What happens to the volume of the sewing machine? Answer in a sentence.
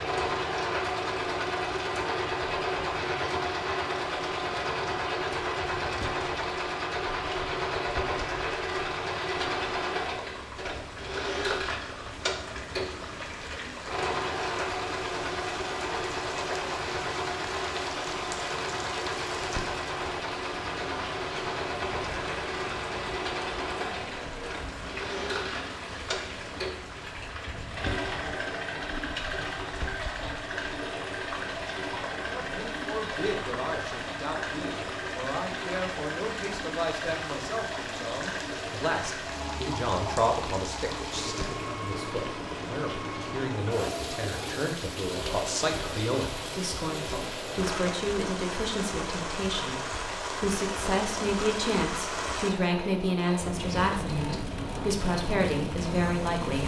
The volume of the sewing machine goes down.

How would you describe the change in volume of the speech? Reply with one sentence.
The loudness of the speech goes up.